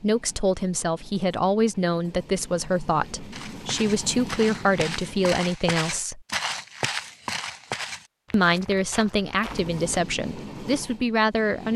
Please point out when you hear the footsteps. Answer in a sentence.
The footsteps can be heard from 3.3 to 9.8 s.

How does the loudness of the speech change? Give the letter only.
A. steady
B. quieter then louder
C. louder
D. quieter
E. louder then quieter
A.